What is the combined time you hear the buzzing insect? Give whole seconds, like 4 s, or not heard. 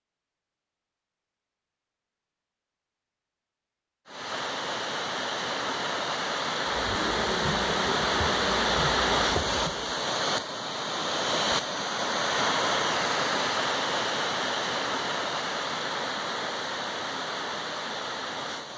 3 s.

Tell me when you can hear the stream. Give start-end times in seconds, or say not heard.
4.0-18.7.